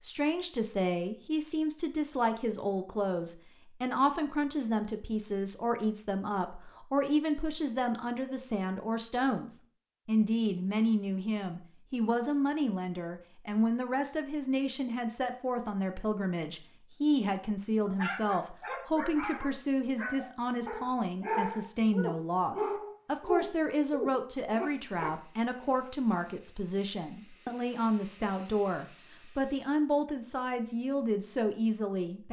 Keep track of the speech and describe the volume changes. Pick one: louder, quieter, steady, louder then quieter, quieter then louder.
steady.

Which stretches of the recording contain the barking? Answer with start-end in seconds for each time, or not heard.
17.9-25.1.